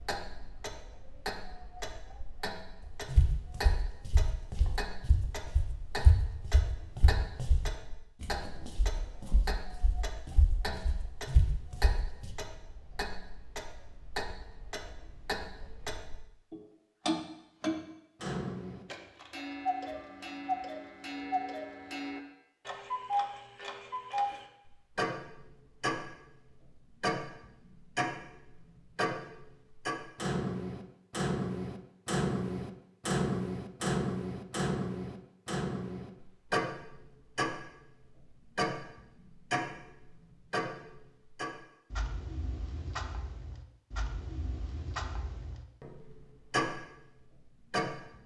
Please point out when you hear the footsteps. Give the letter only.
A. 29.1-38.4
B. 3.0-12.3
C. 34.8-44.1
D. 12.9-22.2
B.